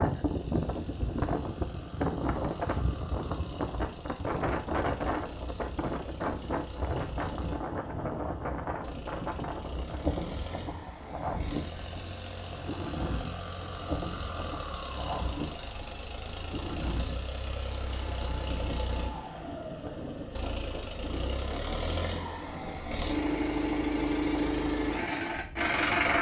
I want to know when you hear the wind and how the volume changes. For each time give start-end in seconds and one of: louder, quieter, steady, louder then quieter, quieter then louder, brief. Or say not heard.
0.0-26.0 quieter.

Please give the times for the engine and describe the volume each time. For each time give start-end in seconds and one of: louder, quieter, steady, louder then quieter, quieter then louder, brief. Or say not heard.
0.0-26.1 louder.